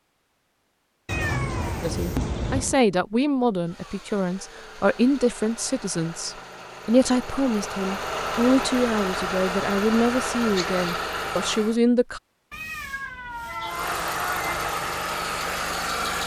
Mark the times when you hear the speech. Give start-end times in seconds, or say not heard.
1.8-12.2.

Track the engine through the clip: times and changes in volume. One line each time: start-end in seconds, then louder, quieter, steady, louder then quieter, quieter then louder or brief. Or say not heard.
3.6-11.8 louder
13.6-16.2 brief.